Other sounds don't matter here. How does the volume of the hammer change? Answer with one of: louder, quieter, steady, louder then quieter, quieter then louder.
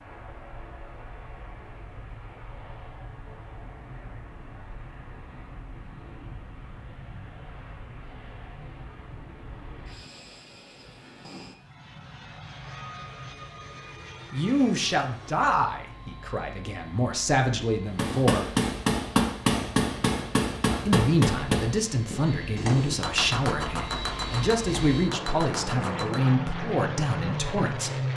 quieter.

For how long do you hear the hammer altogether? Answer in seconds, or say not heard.
8 s.